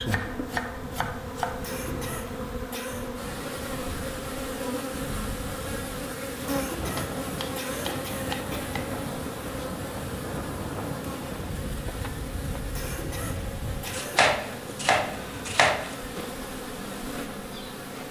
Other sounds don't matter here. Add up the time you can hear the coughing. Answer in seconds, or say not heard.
5 s.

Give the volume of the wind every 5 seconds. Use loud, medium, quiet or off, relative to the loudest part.
medium, loud, loud, off.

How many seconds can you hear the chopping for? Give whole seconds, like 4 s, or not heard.
6 s.